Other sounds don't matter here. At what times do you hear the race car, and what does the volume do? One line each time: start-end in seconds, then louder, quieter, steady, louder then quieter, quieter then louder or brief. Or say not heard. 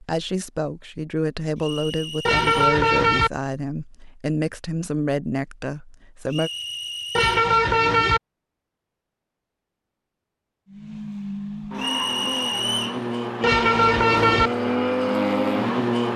10.7-16.1 louder.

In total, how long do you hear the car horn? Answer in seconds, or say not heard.
3 s.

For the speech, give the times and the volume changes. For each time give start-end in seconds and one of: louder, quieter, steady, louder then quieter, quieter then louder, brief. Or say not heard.
0.0-6.5 steady.